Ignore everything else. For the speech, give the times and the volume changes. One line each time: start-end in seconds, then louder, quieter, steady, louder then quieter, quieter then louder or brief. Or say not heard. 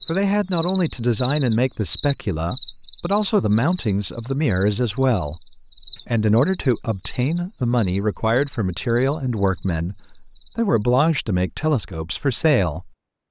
0.1-12.9 steady.